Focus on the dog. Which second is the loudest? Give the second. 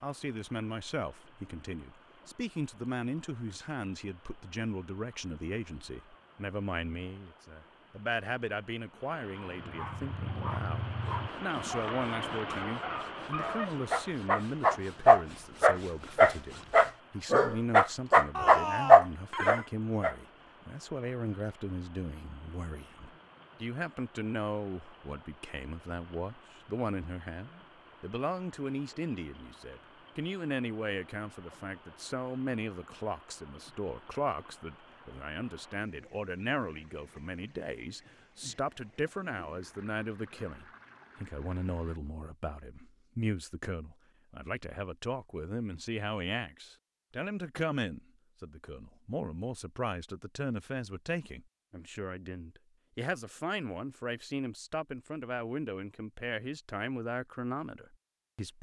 19 s.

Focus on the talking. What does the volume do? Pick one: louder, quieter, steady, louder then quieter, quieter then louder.
steady.